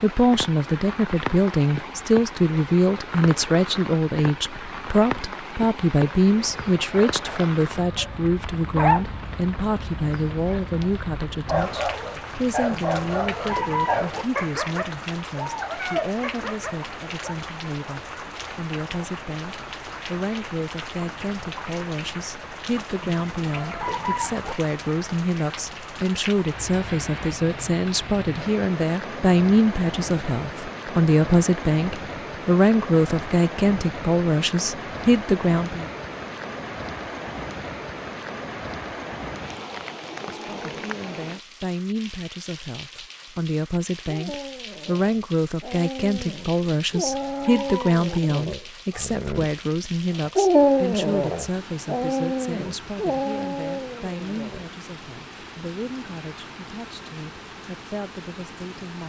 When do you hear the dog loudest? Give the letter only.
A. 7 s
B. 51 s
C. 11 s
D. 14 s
B.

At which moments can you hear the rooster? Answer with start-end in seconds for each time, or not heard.
12.7-14.2, 23.1-24.6, 46.9-48.2.